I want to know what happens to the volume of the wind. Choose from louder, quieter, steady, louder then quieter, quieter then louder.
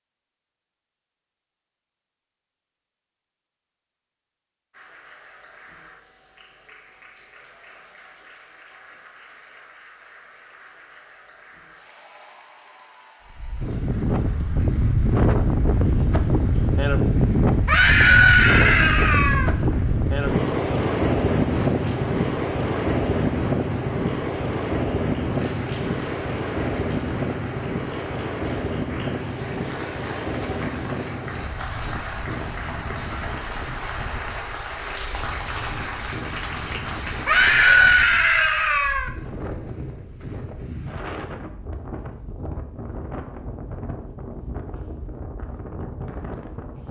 quieter.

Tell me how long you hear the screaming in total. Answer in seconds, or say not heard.
4 s.